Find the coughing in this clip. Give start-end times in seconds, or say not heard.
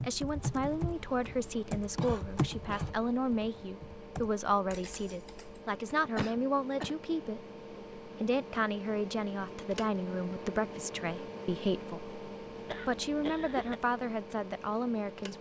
1.9-3.0, 6.2-7.0, 12.7-13.8.